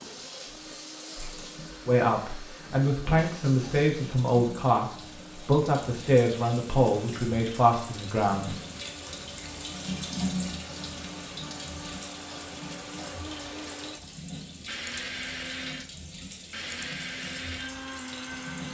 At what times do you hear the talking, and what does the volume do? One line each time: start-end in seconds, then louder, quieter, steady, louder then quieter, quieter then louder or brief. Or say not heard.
1.9-8.6 steady.